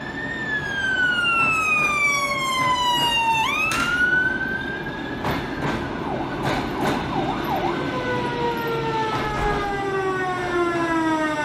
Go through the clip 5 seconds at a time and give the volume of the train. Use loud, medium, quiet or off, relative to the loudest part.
medium, loud, medium.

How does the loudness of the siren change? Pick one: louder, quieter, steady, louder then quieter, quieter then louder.
quieter then louder.